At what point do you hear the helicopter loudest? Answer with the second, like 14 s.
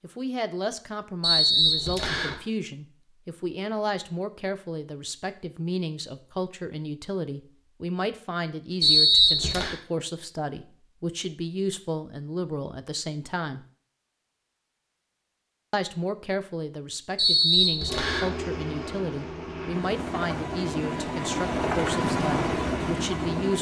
22 s.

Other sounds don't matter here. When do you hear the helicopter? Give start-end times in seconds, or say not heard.
17.9-23.5.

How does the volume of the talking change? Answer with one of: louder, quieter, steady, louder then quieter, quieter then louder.
steady.